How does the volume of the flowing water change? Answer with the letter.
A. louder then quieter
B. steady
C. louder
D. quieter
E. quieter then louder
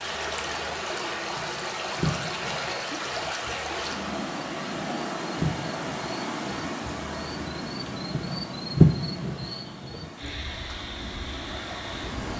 D.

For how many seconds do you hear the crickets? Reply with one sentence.
The crickets can be heard for 12 seconds in total.